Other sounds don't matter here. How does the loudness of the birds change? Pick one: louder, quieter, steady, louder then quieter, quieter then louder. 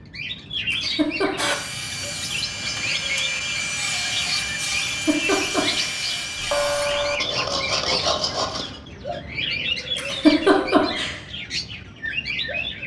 steady.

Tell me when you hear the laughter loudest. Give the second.
10 s.